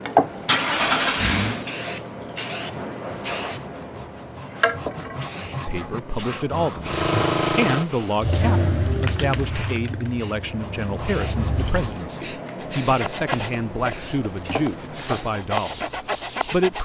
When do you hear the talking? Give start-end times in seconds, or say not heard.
5.7-16.8.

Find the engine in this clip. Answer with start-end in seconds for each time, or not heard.
0.0-1.7, 6.8-11.9.